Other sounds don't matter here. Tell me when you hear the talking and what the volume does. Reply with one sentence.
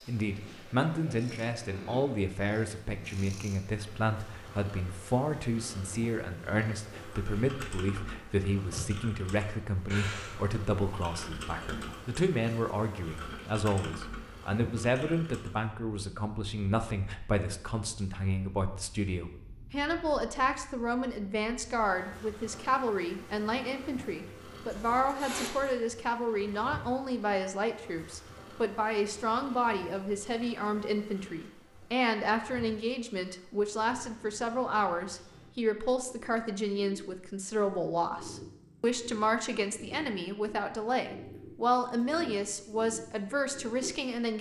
You can hear the talking from 0.1 to 44.3 s, at a steady volume.